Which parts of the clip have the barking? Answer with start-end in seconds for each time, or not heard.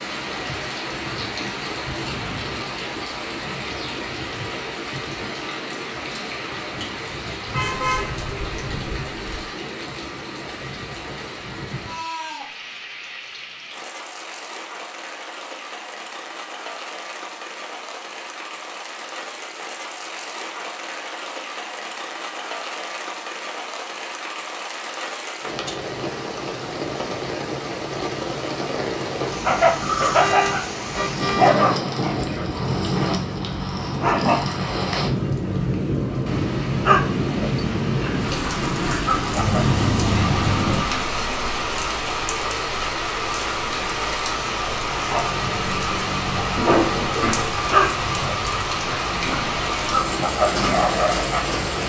29.2-39.6, 44.9-51.6.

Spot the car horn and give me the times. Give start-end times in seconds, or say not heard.
7.5-9.4, 30.1-31.6, 39.4-40.9.